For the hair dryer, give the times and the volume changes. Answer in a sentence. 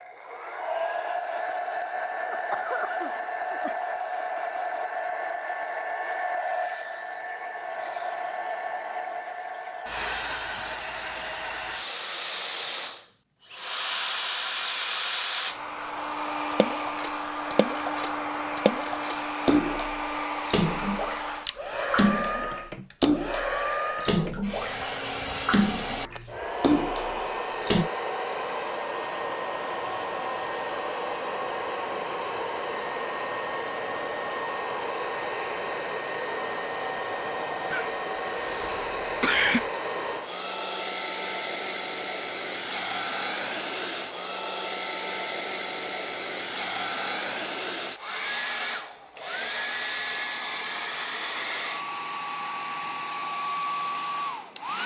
The hair dryer can be heard from 0.0 to 54.8 s, at a steady volume.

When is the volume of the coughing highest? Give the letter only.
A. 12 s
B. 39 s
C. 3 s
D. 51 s
B.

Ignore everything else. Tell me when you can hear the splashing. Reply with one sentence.
You can hear the splashing from 16.5 to 27.9 s.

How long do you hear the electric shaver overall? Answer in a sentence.
The electric shaver can't be heard in this clip.